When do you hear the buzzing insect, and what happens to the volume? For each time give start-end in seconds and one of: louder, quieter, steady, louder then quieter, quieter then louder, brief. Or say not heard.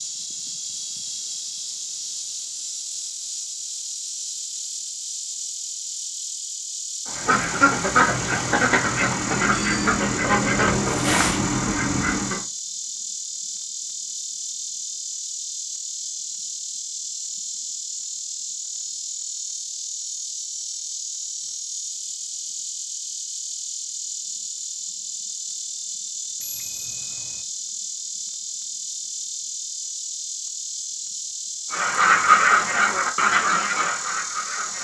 0.0-34.7 steady.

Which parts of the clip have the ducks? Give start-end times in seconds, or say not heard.
7.0-12.4, 31.7-34.7.